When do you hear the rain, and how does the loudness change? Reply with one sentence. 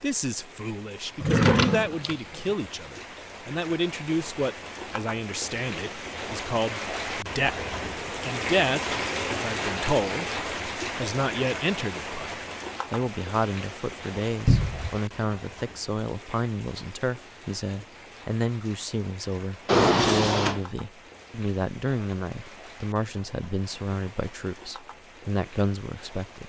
You can hear the rain from 0.0 to 26.4 s, getting louder then quieter.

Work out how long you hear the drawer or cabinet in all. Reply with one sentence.
The drawer or cabinet can be heard for 3 seconds in total.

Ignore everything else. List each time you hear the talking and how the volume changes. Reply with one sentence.
You can hear the talking from 0.0 to 26.4 s, at a steady volume.